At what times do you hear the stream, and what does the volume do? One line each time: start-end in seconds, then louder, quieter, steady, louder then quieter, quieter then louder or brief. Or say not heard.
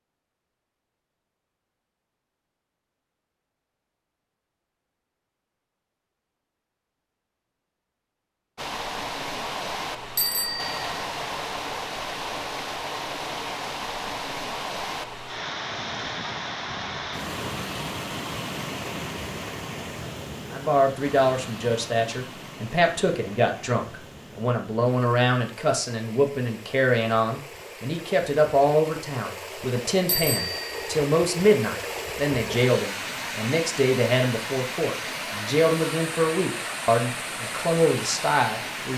8.6-38.9 quieter then louder.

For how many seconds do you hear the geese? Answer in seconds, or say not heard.
not heard.